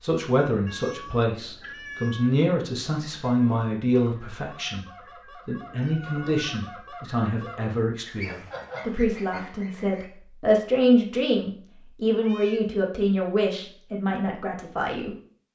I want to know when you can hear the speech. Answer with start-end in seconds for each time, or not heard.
0.0-15.5.